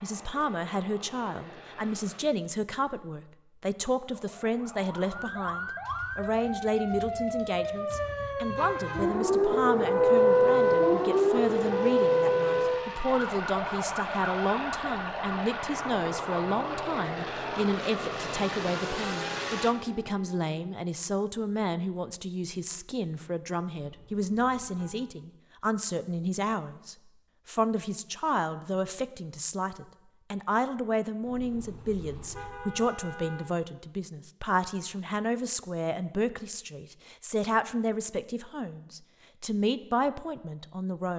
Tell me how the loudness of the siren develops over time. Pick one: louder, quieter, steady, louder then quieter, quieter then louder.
louder then quieter.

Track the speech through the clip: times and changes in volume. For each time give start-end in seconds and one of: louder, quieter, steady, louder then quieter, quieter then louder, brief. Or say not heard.
0.0-41.1 steady.